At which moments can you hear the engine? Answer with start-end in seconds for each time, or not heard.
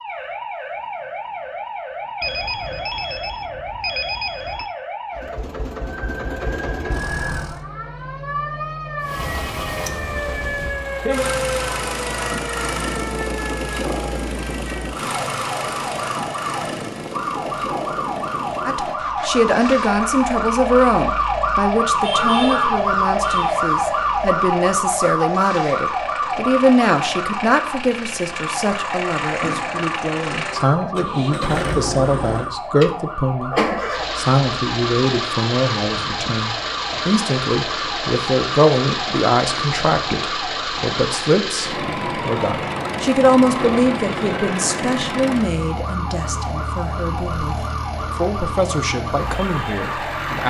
5.1-7.7, 9.0-50.4.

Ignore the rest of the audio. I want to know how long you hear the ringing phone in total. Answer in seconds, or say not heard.
4 s.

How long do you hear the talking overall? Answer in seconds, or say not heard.
32 s.